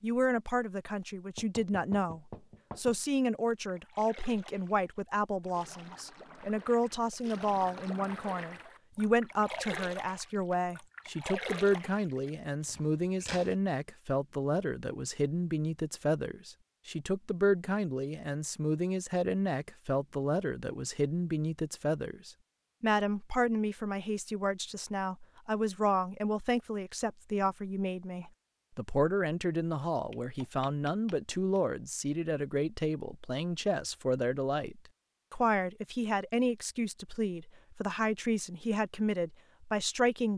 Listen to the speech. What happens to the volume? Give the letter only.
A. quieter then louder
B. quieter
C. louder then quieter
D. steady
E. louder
D.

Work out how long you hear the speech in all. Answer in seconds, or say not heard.
40 s.